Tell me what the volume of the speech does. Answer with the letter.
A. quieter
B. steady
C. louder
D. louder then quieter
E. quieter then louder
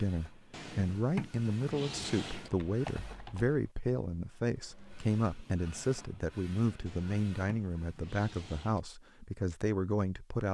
B.